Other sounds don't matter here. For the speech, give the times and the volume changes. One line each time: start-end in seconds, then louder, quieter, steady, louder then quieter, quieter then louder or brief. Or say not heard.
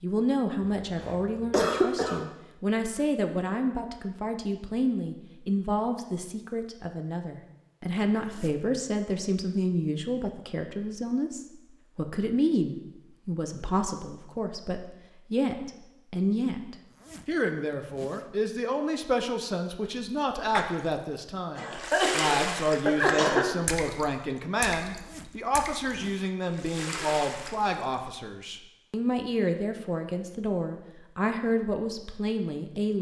0.0-32.9 steady.